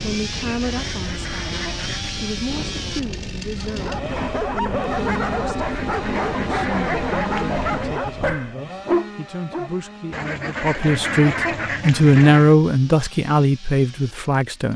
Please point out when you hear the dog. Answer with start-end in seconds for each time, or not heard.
3.6-9.7.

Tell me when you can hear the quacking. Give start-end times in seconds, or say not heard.
0.3-2.2, 5.6-8.0, 10.1-12.6.